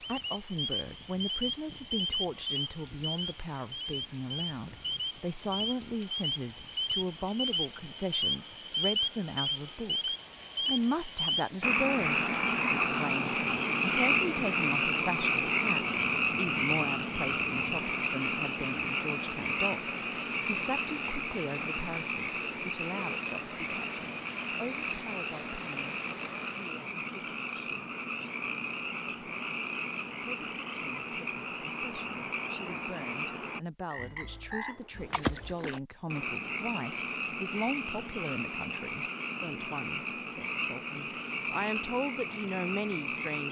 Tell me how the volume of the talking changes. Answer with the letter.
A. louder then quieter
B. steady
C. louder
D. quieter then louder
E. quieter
D.